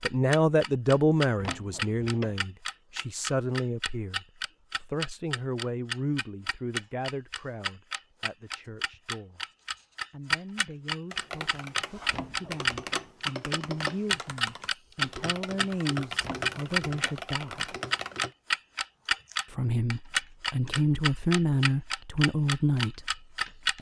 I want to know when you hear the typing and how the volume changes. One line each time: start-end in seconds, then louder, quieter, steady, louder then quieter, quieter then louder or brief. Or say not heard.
11.1-18.4 steady.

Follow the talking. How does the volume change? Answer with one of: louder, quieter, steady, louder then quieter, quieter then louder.
quieter then louder.